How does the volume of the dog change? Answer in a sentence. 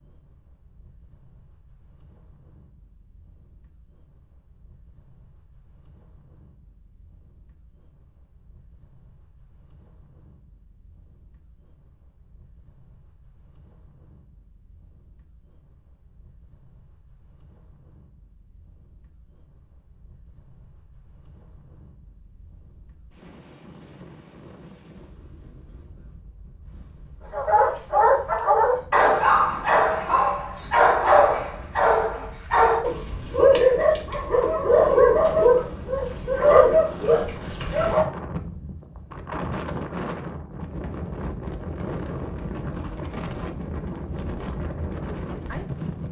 The volume of the dog stays about the same.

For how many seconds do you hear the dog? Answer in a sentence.
The dog can be heard for 11 seconds in total.